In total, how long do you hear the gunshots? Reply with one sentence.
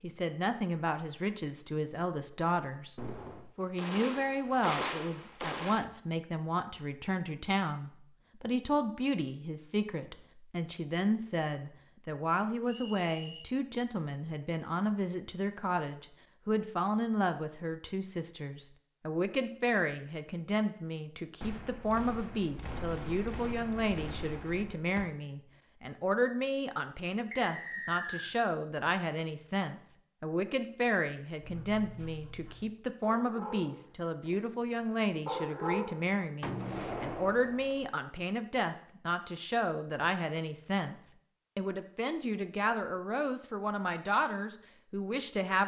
The gunshots can be heard for 8 seconds in total.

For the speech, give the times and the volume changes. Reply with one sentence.
The speech can be heard briefly from 0.0 to 3.0 s; and from 3.5 to 45.6 s, at a steady volume.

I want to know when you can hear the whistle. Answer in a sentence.
You can hear the whistle from 12.7 to 13.5 s and from 27.3 to 28.4 s.